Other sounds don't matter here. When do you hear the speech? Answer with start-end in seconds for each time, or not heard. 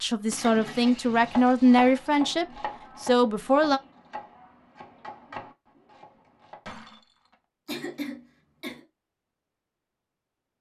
0.0-3.8.